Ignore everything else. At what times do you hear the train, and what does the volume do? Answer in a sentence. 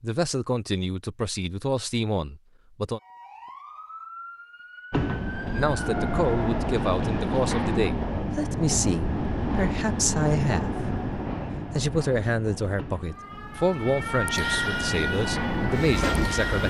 The train can be heard from 4.9 to 16.6 s, getting quieter then louder.